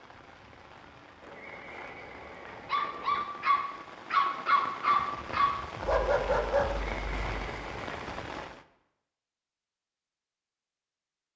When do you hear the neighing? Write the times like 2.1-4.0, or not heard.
1.2-3.2, 6.8-8.2.